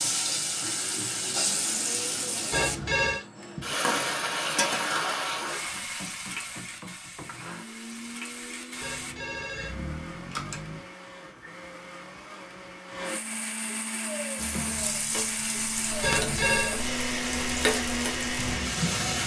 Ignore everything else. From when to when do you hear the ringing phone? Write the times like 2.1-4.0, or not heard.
2.5-3.2, 8.8-10.8, 16.0-16.8.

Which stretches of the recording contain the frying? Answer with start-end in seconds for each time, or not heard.
0.0-9.2, 14.3-19.2.